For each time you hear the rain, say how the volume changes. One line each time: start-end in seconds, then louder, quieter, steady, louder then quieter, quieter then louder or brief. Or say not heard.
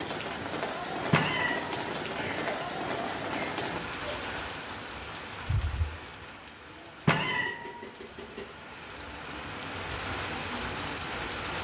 0.0-11.6 quieter then louder.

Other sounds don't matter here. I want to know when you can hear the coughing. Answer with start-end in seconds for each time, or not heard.
2.1-4.2.